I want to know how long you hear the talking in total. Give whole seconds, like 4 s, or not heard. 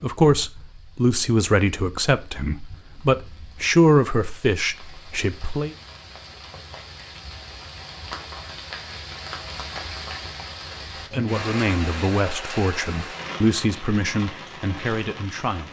10 s.